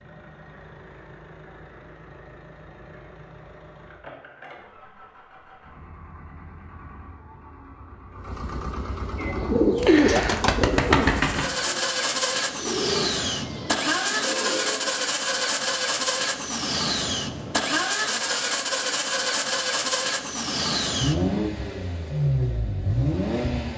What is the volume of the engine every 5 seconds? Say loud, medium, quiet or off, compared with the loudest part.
quiet, quiet, loud, loud, loud.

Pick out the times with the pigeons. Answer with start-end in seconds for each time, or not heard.
9.2-14.9.